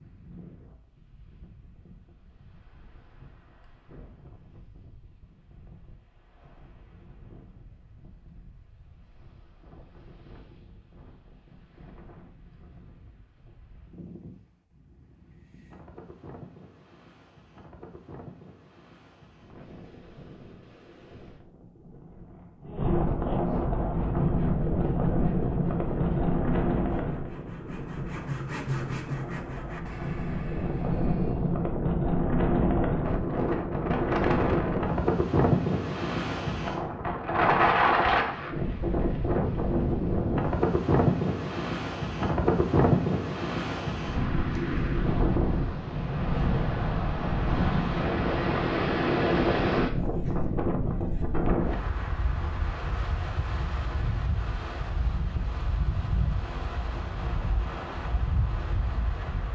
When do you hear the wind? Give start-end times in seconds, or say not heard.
0.0-59.4.